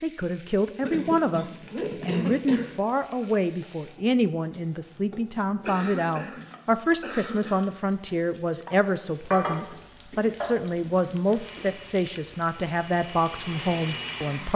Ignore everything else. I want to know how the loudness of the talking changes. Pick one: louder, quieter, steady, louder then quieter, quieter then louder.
steady.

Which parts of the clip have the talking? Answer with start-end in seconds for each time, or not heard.
0.0-14.5.